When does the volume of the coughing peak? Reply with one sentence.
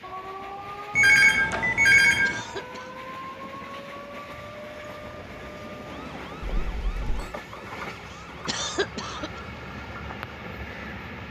The volume of the coughing peaks at 9 seconds.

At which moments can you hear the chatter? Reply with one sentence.
You can't hear the chatter here.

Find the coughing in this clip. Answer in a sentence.
You can hear the coughing from 2.2 to 3.0 s and from 8.4 to 9.4 s.